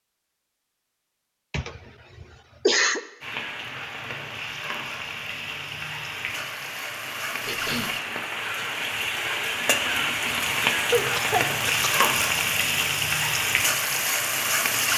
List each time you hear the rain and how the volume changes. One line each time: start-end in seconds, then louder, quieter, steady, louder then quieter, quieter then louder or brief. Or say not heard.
3.2-14.9 louder.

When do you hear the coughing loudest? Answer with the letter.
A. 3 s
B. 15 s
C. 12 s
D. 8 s
A.